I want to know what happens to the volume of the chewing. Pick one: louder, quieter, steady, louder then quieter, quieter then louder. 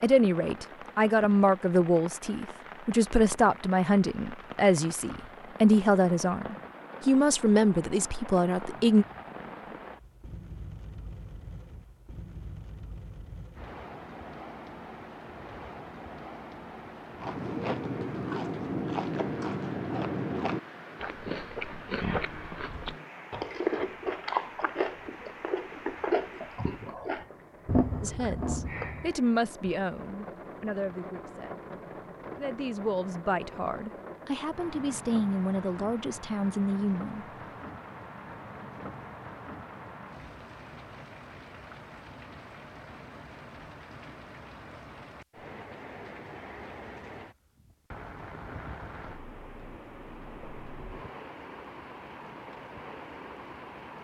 steady.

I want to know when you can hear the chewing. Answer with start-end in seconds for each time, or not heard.
17.1-29.1.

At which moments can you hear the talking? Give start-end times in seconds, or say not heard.
0.0-9.1, 28.0-31.6, 32.4-37.2.